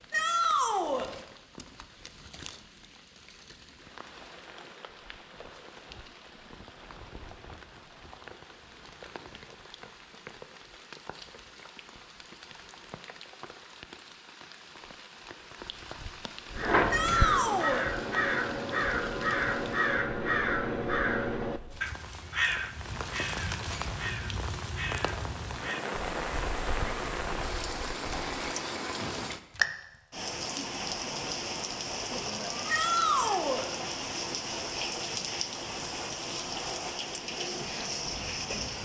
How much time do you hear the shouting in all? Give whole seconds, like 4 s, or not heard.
3 s.